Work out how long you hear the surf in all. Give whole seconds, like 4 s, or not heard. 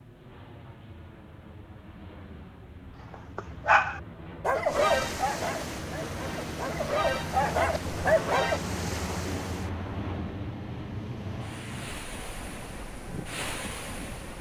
10 s.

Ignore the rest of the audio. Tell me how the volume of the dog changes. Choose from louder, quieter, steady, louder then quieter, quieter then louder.
quieter then louder.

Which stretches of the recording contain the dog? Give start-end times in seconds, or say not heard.
3.1-8.6.